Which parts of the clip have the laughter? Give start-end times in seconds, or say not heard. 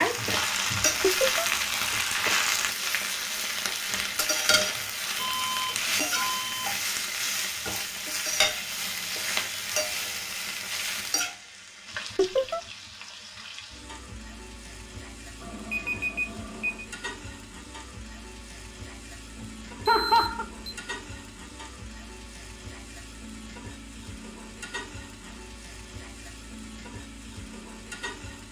1.0-1.4, 12.2-12.6, 19.4-20.4.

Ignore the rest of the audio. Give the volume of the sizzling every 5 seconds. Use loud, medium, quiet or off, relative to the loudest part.
loud, loud, medium, quiet, quiet, quiet.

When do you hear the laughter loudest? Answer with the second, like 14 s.
20 s.